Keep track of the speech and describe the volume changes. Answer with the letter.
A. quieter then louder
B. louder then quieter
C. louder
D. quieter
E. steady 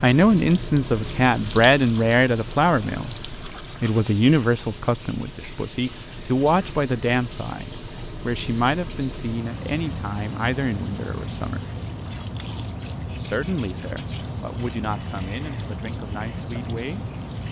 D.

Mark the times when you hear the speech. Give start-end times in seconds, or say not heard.
0.0-11.7, 13.2-17.1.